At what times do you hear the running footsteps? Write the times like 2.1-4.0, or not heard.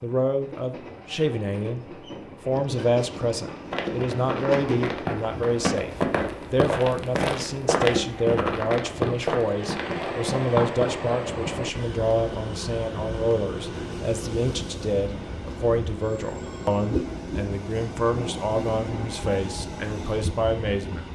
3.4-11.0.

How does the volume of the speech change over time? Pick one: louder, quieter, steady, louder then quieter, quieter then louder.
steady.